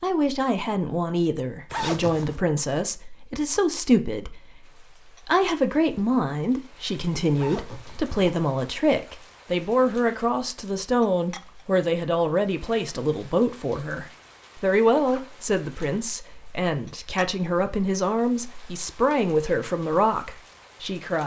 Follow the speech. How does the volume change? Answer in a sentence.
The volume of the speech stays about the same.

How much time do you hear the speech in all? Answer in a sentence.
You can hear the speech for 21 seconds altogether.